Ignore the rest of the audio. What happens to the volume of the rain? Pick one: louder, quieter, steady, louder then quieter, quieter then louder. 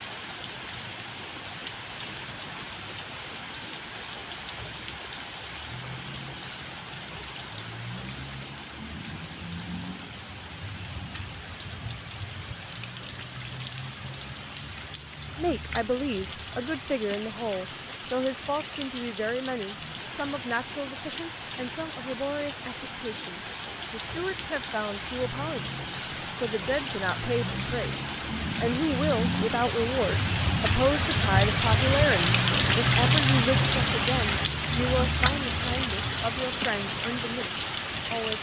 louder.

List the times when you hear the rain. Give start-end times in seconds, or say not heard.
0.0-38.3.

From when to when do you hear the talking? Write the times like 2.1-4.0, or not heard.
15.3-38.3.